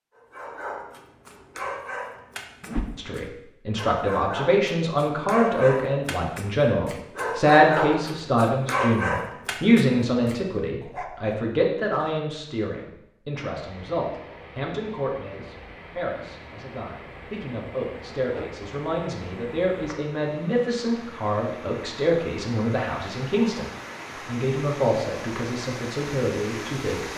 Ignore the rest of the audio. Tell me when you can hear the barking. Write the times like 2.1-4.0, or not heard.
0.1-11.4.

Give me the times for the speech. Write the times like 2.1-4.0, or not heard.
3.0-23.6, 24.2-27.1.